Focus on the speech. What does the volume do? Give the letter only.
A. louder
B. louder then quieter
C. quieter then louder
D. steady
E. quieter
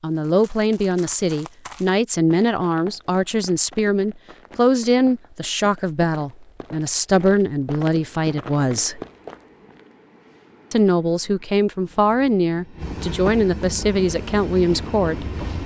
D.